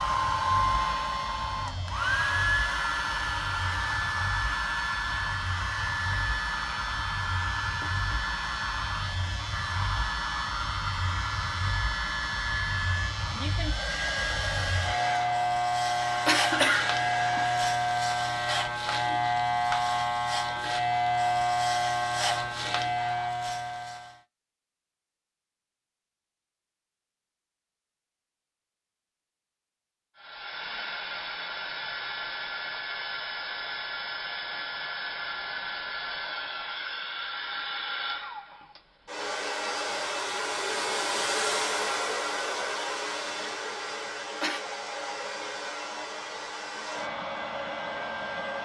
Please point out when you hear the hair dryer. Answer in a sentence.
You can hear the hair dryer from 0.0 to 17.8 s and from 30.1 to 48.6 s.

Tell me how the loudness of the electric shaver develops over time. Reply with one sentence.
The volume of the electric shaver goes up.